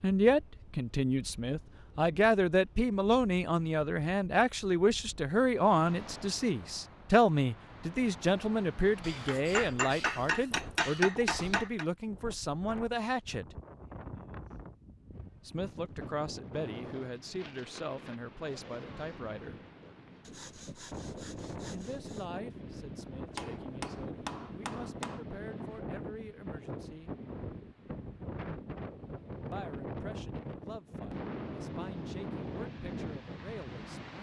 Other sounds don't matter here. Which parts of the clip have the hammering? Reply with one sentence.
You can hear the hammering from 9.0 to 11.8 s and from 23.4 to 25.2 s.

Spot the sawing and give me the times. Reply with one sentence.
The sawing can be heard from 20.2 to 22.3 s.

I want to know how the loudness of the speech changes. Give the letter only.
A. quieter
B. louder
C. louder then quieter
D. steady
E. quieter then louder
A.